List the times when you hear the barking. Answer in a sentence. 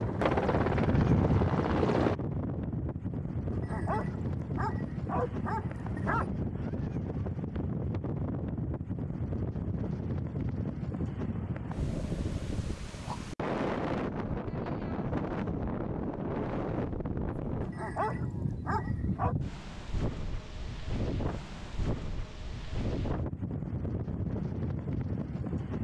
The barking can be heard from 3.5 to 6.3 s and from 17.6 to 19.4 s.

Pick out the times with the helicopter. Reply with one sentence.
The helicopter can be heard from 0.0 to 2.1 s.